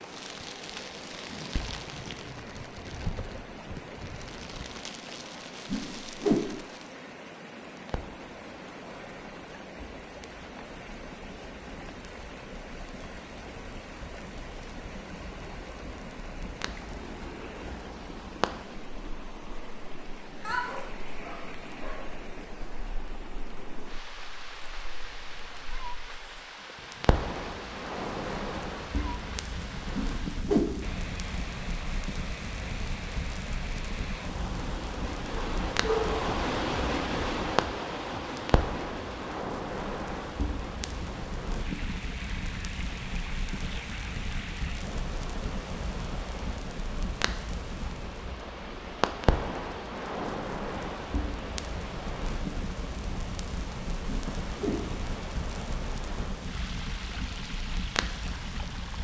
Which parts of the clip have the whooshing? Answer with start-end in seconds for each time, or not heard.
5.7-6.6, 29.9-30.9, 54.0-55.0.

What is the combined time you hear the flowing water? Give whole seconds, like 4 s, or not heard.
59 s.